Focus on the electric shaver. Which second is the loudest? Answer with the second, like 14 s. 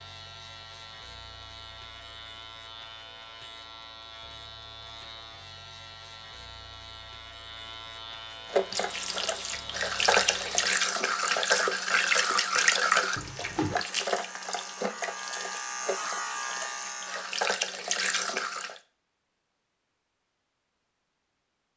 16 s.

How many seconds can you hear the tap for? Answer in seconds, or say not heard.
10 s.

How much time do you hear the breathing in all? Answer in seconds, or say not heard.
not heard.